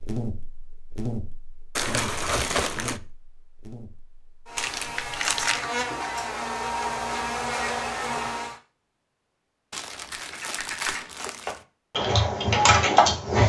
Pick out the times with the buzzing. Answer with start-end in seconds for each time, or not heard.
0.0-8.6.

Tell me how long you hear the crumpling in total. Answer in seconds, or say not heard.
4 s.